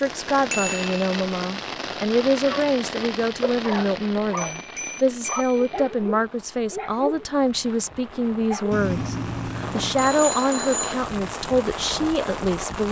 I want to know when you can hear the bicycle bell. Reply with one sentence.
The bicycle bell can be heard from 0.5 to 1.1 s, from 4.3 to 5.9 s and from 8.7 to 10.9 s.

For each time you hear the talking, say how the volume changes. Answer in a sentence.
The talking can be heard from 0.0 to 12.8 s, at a steady volume.